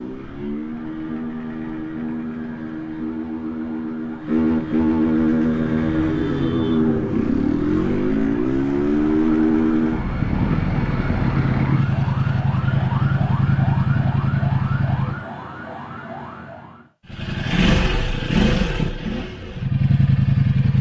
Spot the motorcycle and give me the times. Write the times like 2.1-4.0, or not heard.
0.0-15.2, 17.1-20.7.